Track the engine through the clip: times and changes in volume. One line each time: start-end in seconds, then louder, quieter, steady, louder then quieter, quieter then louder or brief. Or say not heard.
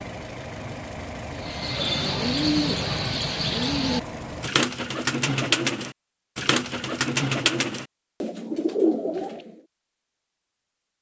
0.0-4.5 steady.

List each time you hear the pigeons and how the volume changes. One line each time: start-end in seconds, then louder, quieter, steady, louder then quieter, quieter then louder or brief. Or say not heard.
1.4-9.5 steady.